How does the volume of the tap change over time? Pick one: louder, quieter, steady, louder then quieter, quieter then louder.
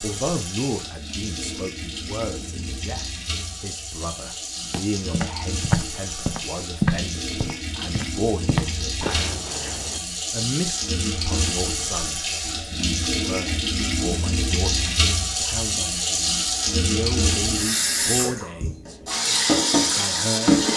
louder.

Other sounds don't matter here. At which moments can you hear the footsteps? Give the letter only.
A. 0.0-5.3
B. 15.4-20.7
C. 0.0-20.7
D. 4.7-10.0
D.